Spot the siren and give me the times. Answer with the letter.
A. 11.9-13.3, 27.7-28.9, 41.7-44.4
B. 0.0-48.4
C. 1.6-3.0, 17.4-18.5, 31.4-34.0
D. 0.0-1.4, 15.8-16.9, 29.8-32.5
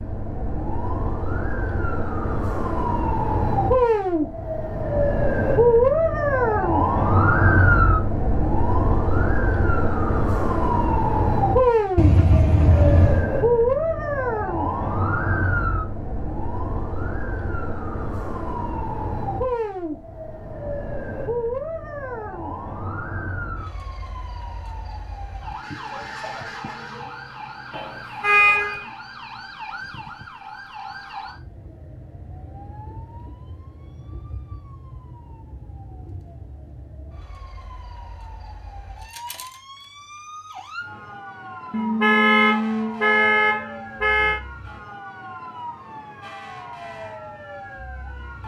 B.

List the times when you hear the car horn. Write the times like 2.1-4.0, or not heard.
11.9-13.3, 27.7-28.9, 41.7-44.4.